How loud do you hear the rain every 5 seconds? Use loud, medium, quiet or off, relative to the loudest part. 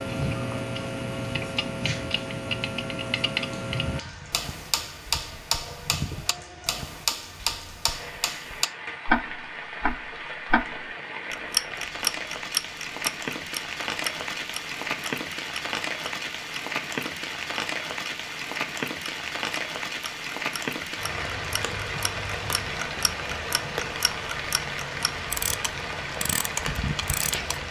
medium, medium, loud, loud, loud, loud.